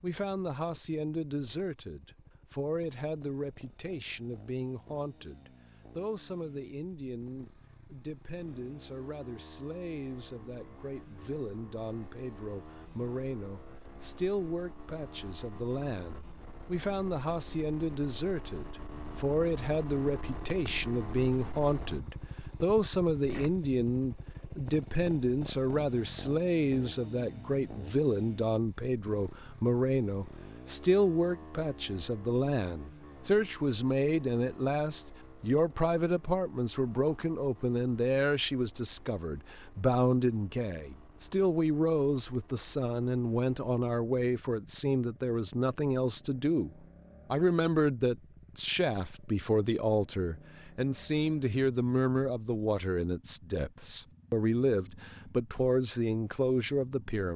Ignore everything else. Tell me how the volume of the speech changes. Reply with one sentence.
The volume of the speech goes up.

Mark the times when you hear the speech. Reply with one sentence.
The speech can be heard from 0.0 to 57.3 s.